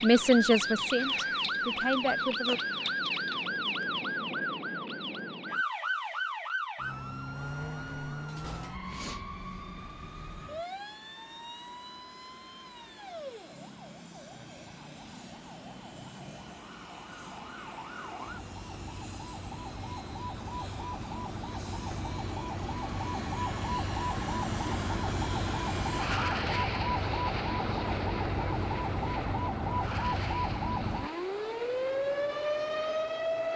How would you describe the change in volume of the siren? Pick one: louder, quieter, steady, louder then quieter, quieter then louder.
quieter then louder.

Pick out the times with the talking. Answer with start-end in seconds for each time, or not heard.
0.0-2.6.